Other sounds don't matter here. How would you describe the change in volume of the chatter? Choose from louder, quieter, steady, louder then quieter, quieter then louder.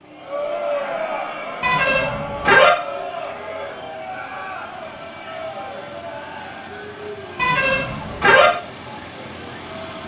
quieter.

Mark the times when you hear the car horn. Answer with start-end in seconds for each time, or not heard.
1.6-2.7, 7.3-8.5.